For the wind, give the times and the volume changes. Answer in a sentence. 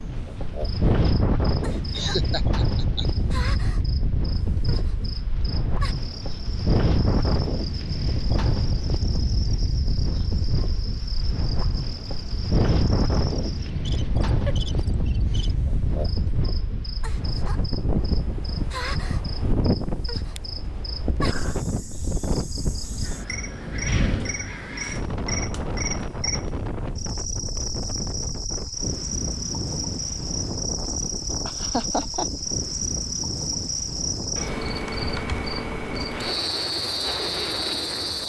You can hear the wind from 0.0 to 38.2 s, getting quieter.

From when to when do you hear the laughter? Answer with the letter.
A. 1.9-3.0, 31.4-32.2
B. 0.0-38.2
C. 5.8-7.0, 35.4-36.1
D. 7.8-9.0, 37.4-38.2
A.